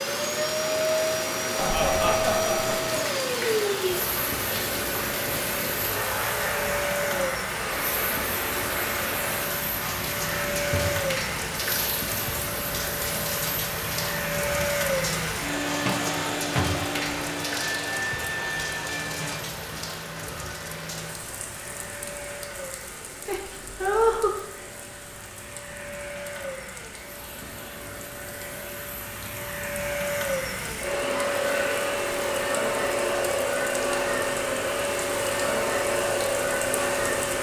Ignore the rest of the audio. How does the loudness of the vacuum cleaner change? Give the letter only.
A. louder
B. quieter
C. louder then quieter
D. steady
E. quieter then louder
E.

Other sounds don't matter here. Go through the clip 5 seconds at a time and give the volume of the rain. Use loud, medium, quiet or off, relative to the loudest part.
loud, loud, loud, loud, medium, quiet, medium, medium.